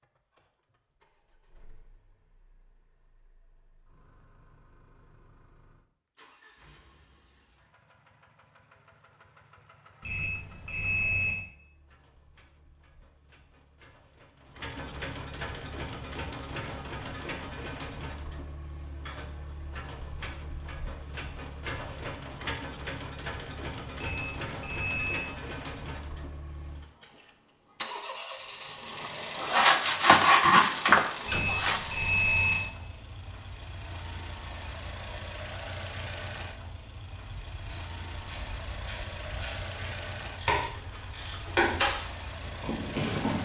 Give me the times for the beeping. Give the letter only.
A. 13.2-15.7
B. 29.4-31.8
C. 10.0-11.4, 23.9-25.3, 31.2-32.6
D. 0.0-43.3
C.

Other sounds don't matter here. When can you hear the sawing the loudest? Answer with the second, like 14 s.
30 s.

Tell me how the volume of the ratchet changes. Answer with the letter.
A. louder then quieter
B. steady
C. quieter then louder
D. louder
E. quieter
A.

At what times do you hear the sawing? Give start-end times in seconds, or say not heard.
29.4-31.8.